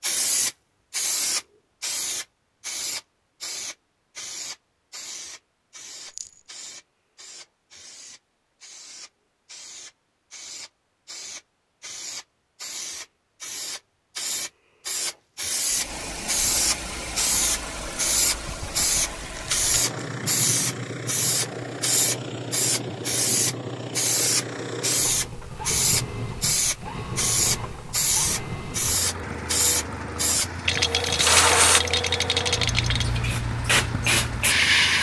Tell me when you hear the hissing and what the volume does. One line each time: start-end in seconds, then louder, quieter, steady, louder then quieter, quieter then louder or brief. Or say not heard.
0.0-34.9 quieter then louder.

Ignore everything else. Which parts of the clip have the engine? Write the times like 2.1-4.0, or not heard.
15.7-34.9.